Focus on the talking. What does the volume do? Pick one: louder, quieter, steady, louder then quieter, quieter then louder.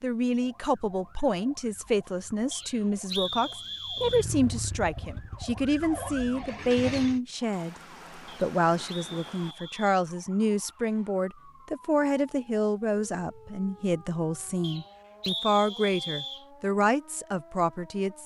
steady.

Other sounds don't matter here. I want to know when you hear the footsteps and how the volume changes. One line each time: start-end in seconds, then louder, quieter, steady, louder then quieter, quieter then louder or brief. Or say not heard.
not heard.